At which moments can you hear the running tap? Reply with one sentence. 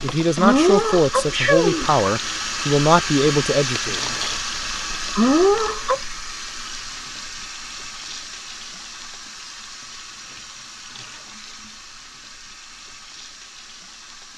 The running tap can be heard from 0.0 to 14.3 s.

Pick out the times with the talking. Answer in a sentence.
You can hear the talking from 0.0 to 4.1 s.